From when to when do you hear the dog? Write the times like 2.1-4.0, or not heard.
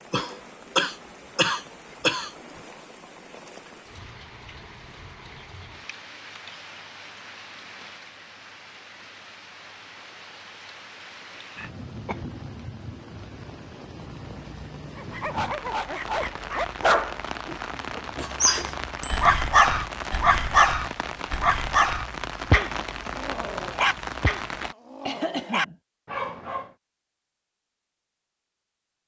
14.9-26.7.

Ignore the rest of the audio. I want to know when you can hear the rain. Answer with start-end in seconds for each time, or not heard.
0.0-24.8.